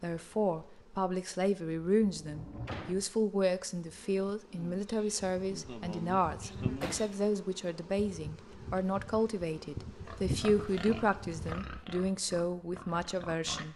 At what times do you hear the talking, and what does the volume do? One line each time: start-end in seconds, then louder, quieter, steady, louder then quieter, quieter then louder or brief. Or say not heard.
0.0-13.7 steady.